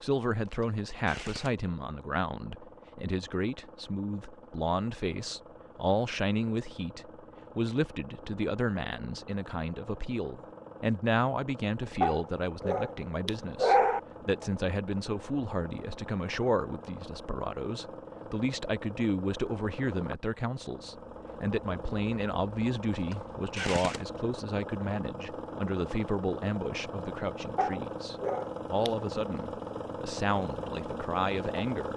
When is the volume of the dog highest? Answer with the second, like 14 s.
14 s.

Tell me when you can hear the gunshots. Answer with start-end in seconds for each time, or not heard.
0.5-1.6, 22.9-24.1.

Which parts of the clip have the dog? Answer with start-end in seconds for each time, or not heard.
12.0-14.0, 27.6-28.9.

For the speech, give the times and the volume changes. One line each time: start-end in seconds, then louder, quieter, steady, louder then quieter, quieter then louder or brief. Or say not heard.
0.0-31.9 steady.